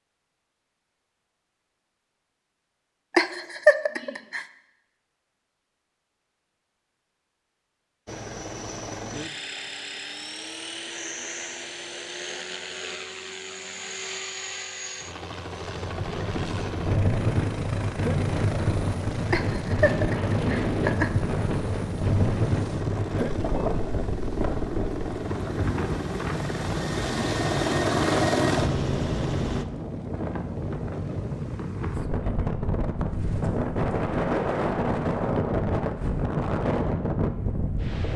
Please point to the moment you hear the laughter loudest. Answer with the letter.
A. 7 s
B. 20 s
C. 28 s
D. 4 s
D.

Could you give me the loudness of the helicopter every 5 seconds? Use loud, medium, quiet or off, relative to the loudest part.
off, medium, medium, medium, medium, loud, off, off.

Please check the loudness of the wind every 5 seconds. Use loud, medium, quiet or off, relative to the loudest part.
off, off, off, loud, loud, medium, loud, loud.